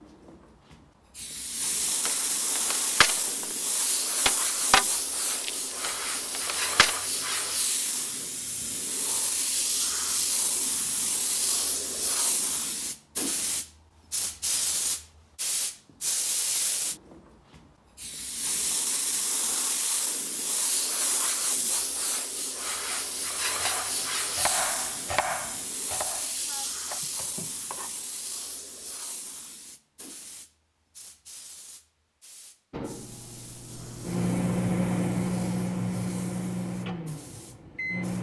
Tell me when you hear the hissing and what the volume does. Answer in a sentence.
You can hear the hissing from 0.0 to 38.1 s, getting quieter.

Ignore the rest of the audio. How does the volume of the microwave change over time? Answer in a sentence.
The loudness of the microwave goes up, then down.